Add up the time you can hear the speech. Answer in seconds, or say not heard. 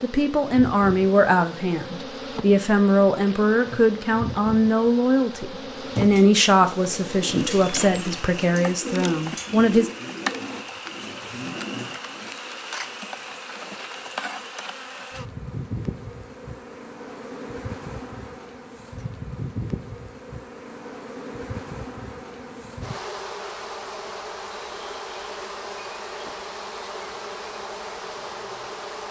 10 s.